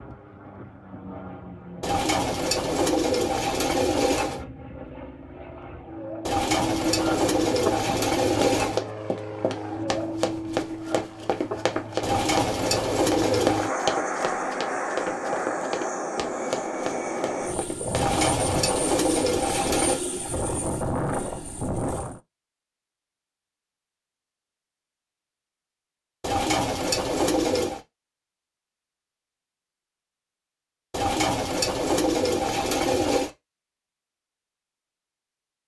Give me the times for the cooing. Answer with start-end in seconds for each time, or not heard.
1.8-4.5, 6.2-8.8, 12.0-13.7, 17.9-20.0, 26.2-27.8, 30.9-33.3.